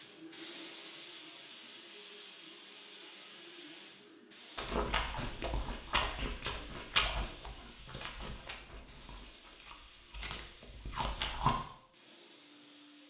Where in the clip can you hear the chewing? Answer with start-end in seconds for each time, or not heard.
4.5-11.6.